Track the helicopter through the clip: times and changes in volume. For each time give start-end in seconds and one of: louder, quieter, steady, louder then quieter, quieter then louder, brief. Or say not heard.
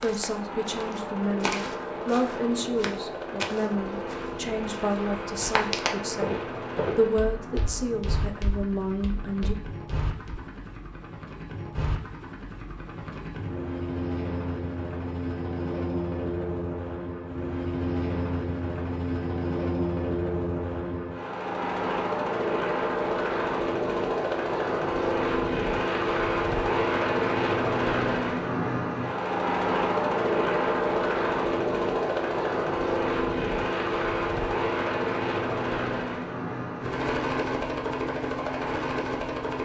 0.0-39.5 louder.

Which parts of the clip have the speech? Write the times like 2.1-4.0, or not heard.
0.0-9.6.